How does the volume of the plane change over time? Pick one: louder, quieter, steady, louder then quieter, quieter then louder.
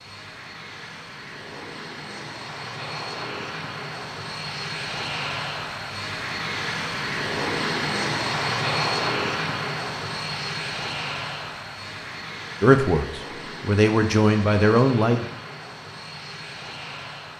louder then quieter.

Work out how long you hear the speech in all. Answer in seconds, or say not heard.
3 s.